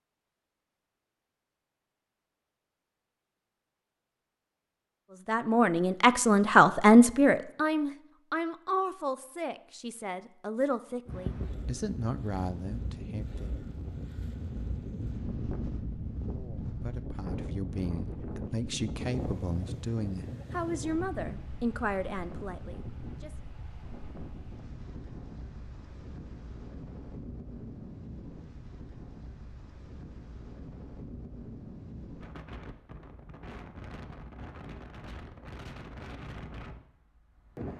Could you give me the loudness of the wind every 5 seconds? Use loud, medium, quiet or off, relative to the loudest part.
off, off, loud, loud, medium, medium, medium, medium.